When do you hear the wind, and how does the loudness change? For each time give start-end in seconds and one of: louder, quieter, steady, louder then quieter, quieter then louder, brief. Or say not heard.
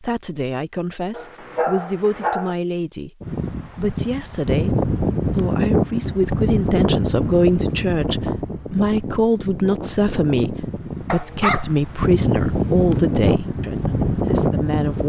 3.2-15.0 quieter then louder.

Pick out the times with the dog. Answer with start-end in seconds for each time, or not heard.
1.1-2.5, 11.1-13.1.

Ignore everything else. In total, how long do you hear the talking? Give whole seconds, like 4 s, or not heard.
15 s.